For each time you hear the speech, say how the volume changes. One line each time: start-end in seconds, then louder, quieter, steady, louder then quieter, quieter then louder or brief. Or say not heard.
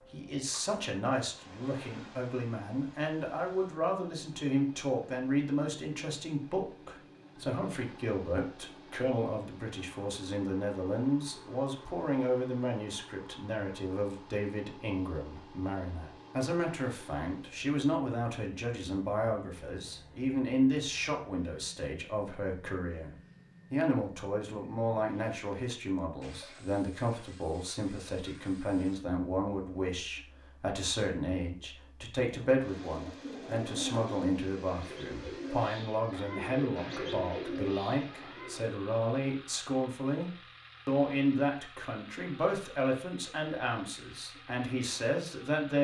0.1-45.8 steady.